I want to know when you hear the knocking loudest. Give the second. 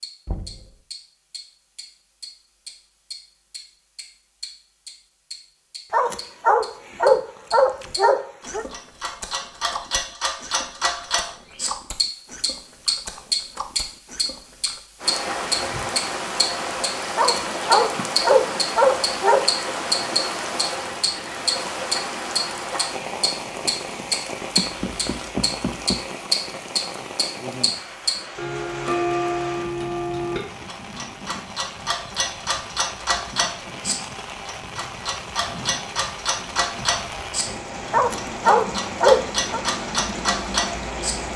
26 s.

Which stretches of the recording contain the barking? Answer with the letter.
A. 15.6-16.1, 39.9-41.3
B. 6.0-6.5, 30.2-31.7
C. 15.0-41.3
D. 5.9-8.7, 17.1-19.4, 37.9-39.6
D.